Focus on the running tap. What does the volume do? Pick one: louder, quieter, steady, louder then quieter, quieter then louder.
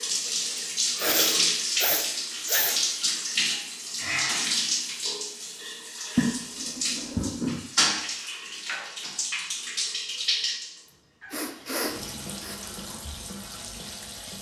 quieter.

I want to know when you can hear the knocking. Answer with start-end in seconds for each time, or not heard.
not heard.